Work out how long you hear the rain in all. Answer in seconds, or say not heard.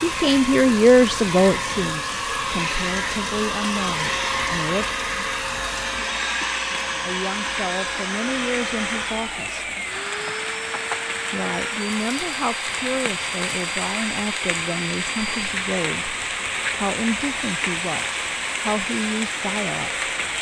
20 s.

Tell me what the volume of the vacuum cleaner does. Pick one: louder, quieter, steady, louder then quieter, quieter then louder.
quieter.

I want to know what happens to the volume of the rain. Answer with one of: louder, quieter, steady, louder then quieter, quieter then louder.
louder.